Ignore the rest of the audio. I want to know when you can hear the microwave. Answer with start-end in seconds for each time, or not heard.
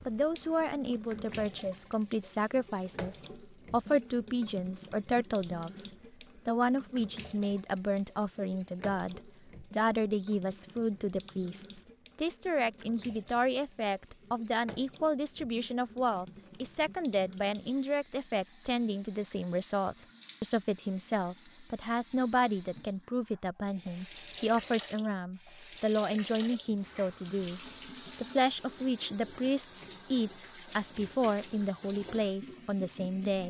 not heard.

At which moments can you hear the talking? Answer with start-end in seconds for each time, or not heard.
0.1-33.4.